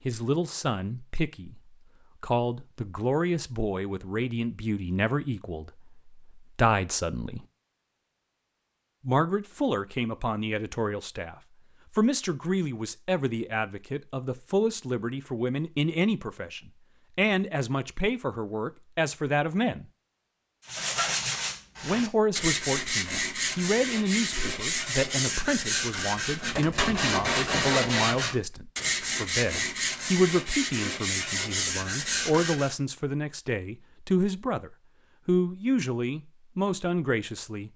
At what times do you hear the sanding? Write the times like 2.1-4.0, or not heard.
20.6-32.8.